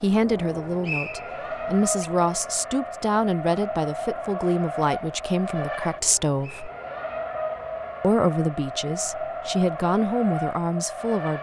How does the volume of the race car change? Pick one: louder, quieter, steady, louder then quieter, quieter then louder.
steady.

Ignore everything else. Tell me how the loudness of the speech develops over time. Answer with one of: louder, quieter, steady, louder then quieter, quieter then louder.
steady.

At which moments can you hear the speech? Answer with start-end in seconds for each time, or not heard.
0.0-6.7, 8.0-11.3.